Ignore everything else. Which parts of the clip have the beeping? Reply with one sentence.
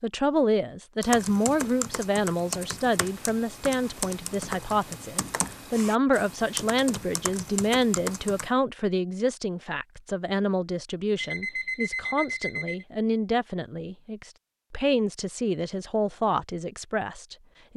The beeping can be heard from 11.2 to 12.8 s.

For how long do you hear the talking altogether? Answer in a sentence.
You can hear the talking for 18 seconds altogether.